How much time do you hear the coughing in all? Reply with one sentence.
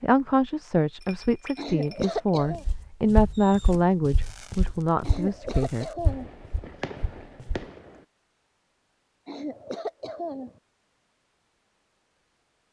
You can hear the coughing for 4 seconds altogether.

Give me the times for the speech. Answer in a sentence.
You can hear the speech from 0.0 to 5.8 s.